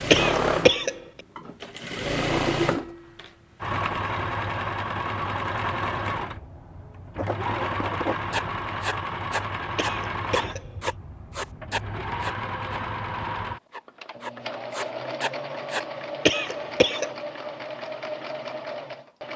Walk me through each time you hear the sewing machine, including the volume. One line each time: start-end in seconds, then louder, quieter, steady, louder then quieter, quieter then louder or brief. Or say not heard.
0.0-19.3 quieter.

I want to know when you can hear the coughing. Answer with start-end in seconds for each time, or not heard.
0.1-0.9, 9.8-10.9, 16.2-17.1.